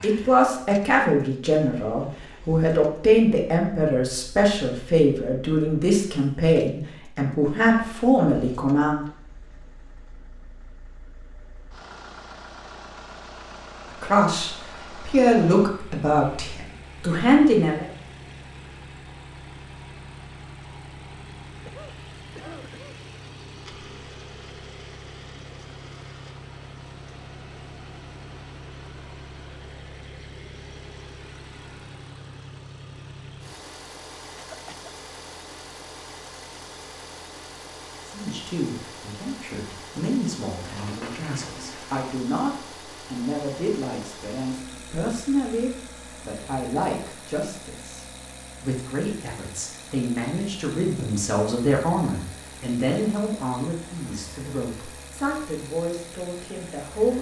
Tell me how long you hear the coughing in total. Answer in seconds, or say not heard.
2 s.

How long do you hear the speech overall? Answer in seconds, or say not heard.
32 s.